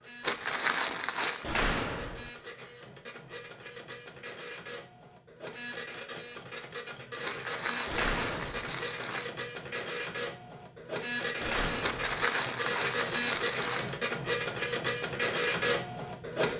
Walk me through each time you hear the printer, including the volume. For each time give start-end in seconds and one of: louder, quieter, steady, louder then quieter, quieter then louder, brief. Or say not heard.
0.0-16.5 louder.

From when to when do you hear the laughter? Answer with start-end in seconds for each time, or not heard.
not heard.